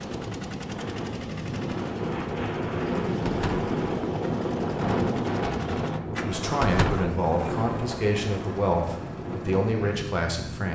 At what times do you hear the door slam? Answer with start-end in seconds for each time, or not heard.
3.2-3.7, 6.6-7.1.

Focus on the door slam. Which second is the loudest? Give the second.
7 s.